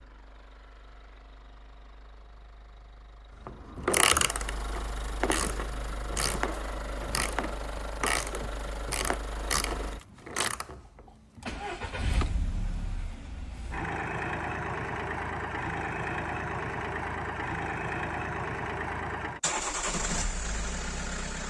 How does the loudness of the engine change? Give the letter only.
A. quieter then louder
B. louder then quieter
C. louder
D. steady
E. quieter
C.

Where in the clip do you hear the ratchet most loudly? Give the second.
4 s.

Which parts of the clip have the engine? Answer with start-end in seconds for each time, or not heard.
0.0-21.4.